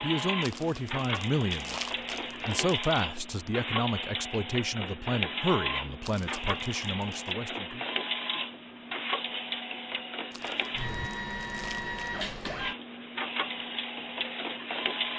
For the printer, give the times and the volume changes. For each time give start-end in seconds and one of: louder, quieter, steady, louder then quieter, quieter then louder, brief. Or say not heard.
0.0-15.1 steady.